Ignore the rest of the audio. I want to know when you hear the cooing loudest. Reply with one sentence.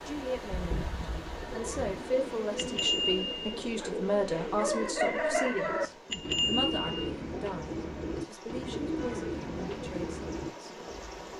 The volume of the cooing peaks at 5 seconds.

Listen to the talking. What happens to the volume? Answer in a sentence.
The loudness of the talking goes down.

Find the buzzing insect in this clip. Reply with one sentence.
You can hear the buzzing insect from 0.0 to 2.6 s.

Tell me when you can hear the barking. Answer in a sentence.
You can't hear the barking here.